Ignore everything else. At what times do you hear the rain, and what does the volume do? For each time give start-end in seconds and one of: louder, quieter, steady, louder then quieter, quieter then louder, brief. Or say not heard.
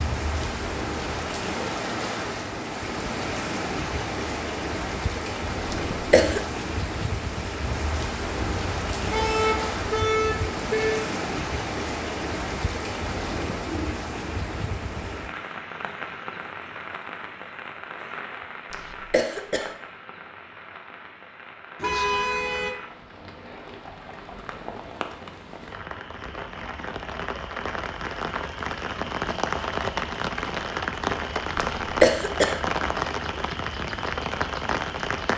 0.0-35.3 quieter then louder.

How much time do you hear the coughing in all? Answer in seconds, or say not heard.
3 s.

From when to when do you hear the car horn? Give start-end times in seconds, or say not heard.
8.3-11.1, 21.8-22.8.